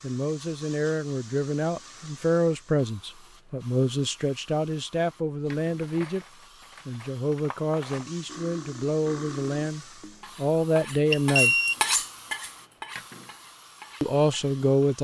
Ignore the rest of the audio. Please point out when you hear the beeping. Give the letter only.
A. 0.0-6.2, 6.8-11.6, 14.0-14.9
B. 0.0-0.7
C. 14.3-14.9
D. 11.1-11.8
D.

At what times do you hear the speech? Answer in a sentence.
You can hear the speech from 0.0 to 6.2 s, from 6.8 to 11.6 s and from 14.0 to 14.9 s.